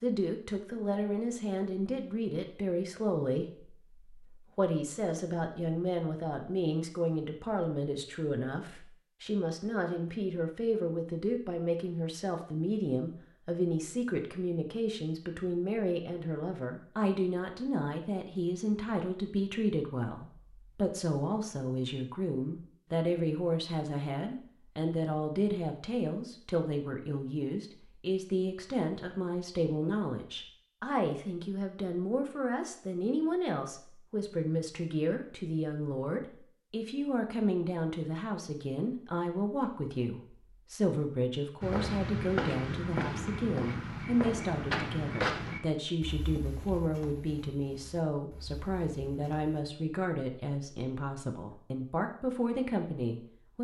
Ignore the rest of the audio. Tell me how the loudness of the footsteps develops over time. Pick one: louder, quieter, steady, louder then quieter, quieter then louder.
quieter.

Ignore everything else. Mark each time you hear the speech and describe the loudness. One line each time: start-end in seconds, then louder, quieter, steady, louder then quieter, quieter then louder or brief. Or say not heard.
0.0-53.5 steady.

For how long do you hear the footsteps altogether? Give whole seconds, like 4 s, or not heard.
8 s.